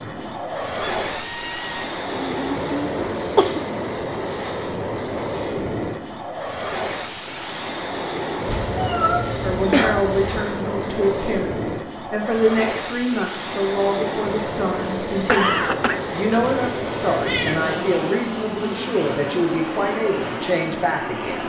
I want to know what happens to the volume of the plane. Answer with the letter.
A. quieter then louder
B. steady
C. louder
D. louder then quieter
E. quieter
B.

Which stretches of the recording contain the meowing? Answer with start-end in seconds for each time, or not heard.
1.1-1.9, 8.4-10.4, 16.4-18.2.